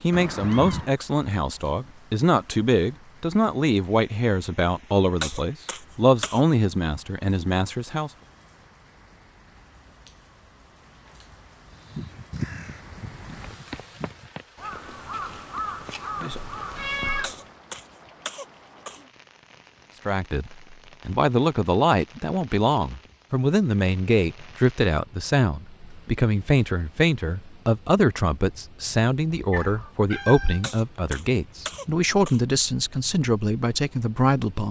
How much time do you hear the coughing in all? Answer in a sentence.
You can hear the coughing for 5 seconds altogether.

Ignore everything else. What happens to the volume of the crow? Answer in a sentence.
The volume of the crow goes down, then up.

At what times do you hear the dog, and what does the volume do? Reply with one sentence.
The dog can't be heard in this clip.